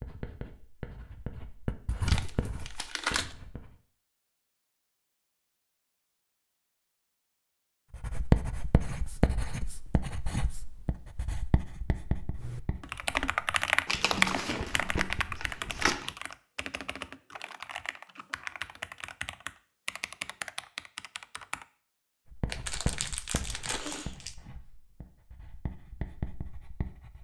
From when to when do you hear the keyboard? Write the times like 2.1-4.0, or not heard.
12.3-21.6.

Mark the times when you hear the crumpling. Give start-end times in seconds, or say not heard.
2.0-3.4, 13.8-16.1, 22.4-24.4.